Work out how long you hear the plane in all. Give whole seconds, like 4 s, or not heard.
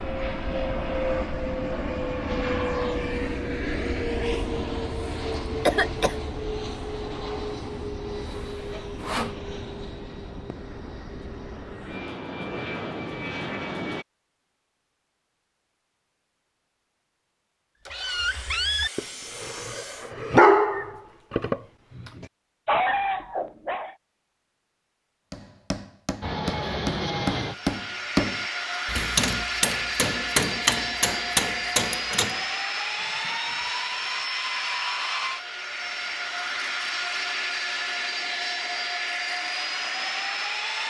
29 s.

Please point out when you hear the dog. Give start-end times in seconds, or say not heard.
17.9-23.9.